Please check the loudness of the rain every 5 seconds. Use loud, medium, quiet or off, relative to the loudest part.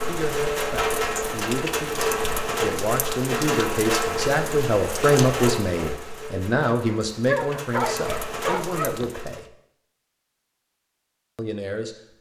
loud, medium, off.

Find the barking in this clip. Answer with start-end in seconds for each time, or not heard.
7.2-9.2.